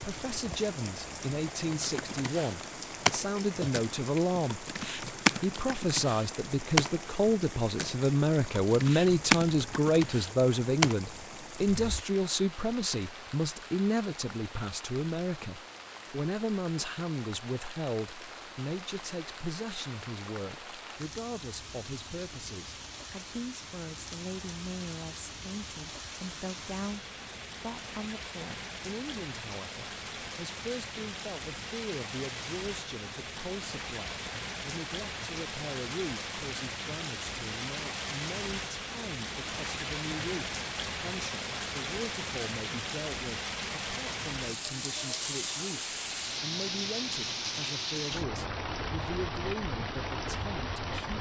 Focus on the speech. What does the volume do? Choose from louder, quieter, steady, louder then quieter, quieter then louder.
quieter.